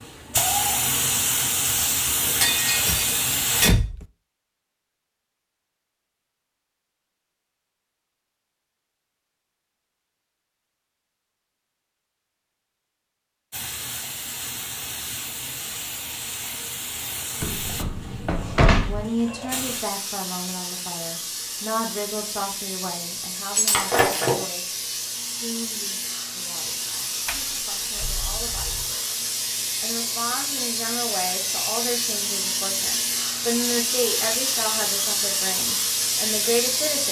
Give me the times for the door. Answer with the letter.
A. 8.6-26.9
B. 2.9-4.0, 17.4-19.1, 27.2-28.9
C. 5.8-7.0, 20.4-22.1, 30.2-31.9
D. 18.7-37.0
B.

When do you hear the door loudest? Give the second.
19 s.